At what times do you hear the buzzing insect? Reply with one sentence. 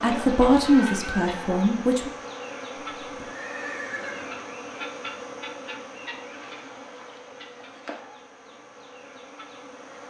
You can hear the buzzing insect from 0.0 to 10.0 s.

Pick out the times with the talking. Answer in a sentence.
The talking can be heard from 0.0 to 2.1 s.